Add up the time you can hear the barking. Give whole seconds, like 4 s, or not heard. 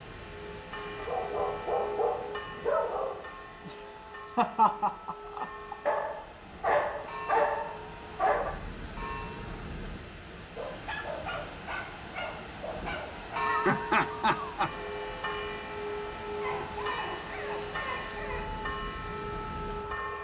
10 s.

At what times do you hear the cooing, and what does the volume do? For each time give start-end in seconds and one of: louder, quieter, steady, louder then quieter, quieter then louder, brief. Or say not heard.
not heard.